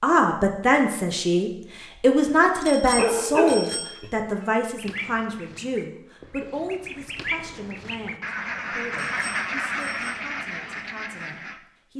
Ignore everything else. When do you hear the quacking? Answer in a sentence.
You can hear the quacking from 4.8 to 11.6 s.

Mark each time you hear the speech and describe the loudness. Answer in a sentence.
You can hear the speech from 0.0 to 11.9 s, getting quieter.